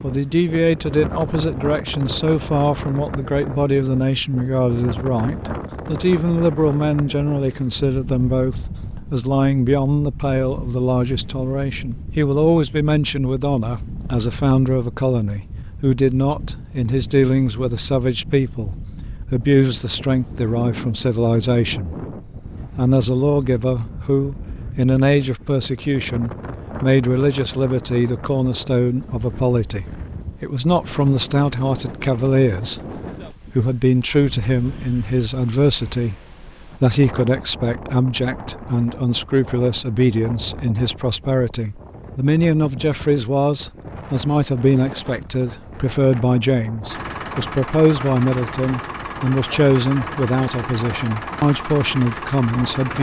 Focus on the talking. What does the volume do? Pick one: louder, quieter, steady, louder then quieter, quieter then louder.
steady.